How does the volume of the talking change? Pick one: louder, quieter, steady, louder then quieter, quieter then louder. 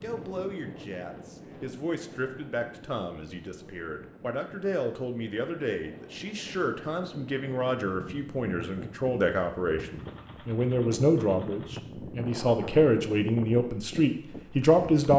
louder.